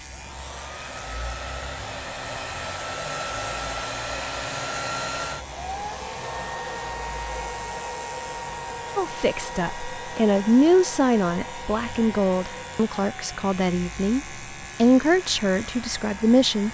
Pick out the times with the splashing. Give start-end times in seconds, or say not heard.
not heard.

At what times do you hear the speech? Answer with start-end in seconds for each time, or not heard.
8.9-16.6.